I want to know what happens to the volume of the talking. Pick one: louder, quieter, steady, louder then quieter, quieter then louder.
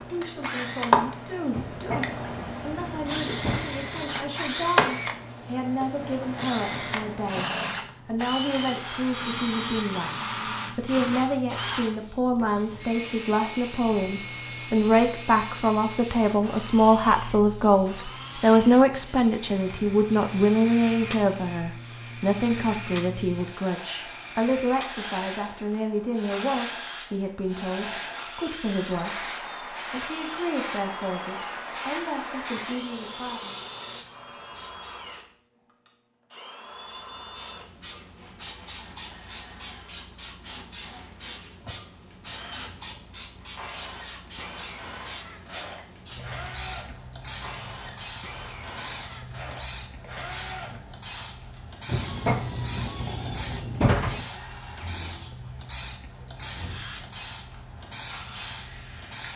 louder then quieter.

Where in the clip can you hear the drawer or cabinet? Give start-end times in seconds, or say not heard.
1.5-3.6, 51.9-54.2.